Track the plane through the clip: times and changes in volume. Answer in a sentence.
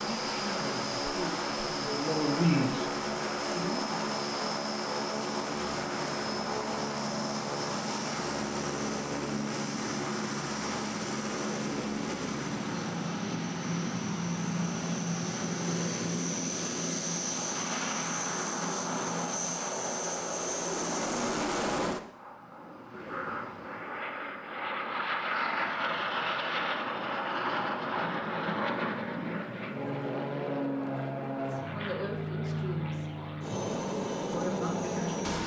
You can hear the plane from 0.0 to 35.4 s, at a steady volume.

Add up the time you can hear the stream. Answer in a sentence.
The stream can't be heard in this clip.